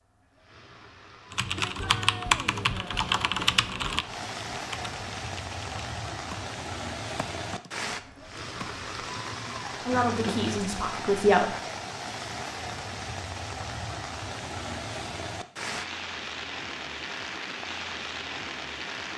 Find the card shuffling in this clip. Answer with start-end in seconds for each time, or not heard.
9.9-10.7.